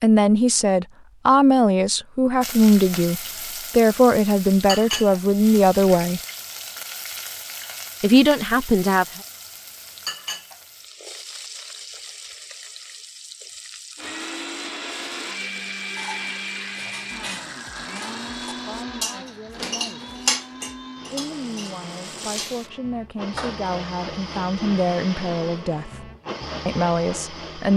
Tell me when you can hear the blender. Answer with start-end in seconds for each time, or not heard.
13.9-27.7.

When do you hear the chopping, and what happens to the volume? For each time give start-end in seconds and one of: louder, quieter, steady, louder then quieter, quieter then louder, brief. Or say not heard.
not heard.